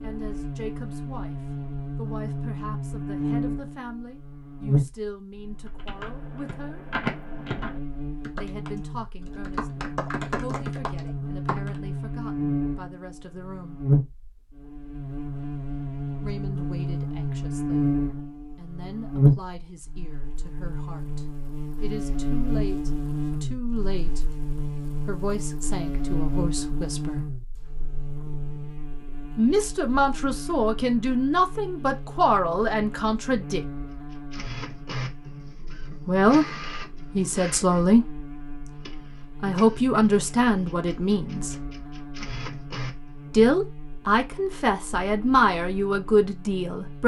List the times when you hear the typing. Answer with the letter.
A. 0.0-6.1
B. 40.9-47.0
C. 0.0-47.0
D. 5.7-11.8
D.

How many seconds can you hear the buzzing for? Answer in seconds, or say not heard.
47 s.